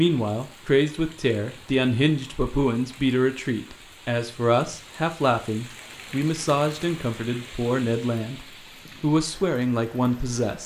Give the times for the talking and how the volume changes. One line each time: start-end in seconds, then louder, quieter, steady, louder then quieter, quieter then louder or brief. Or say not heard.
0.0-10.6 steady.